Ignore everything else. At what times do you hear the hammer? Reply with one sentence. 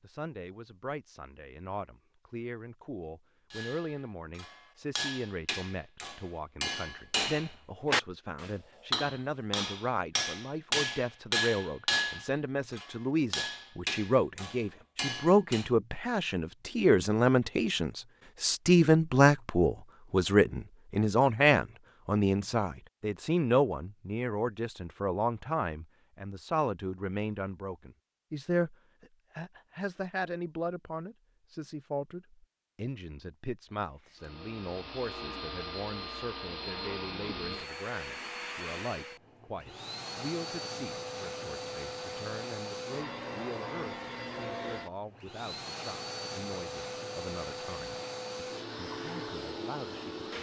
You can hear the hammer from 3.5 to 15.7 s.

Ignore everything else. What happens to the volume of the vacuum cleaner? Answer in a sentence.
The volume of the vacuum cleaner stays about the same.